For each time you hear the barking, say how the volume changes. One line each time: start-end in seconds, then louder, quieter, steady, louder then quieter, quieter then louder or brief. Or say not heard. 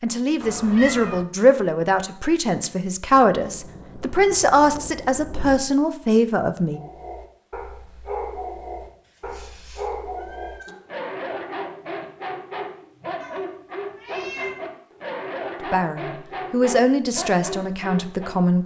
6.7-18.4 steady.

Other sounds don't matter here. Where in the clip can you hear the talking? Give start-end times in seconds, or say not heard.
0.0-6.8, 15.7-18.6.